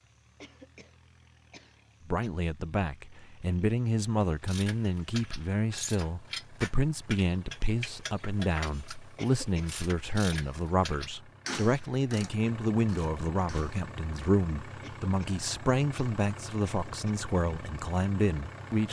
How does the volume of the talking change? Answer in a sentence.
The loudness of the talking stays about the same.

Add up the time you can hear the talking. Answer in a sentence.
You can hear the talking for 17 seconds altogether.